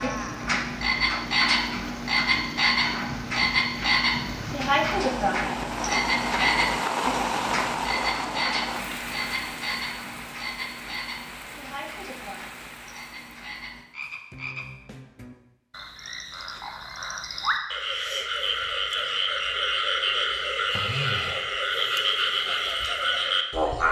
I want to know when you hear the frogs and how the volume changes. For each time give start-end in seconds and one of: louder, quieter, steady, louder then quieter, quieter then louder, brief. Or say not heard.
0.0-23.8 quieter then louder.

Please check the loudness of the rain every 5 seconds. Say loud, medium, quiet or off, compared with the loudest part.
medium, loud, quiet, off, off.